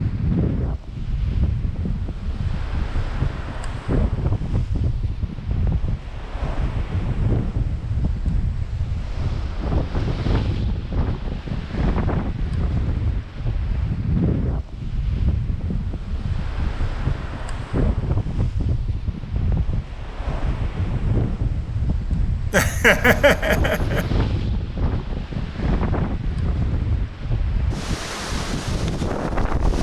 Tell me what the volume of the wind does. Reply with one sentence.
The volume of the wind stays about the same.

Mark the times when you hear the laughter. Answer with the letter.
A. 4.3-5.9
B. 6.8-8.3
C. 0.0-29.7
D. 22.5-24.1
D.